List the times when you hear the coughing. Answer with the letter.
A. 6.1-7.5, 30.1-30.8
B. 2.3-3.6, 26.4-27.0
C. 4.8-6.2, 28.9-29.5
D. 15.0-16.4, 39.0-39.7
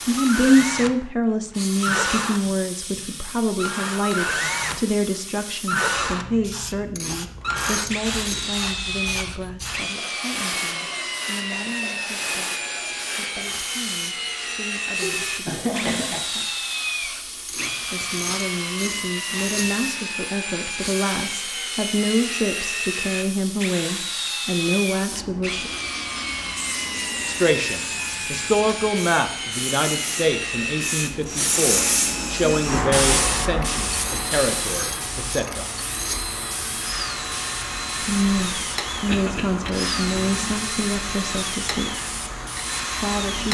D.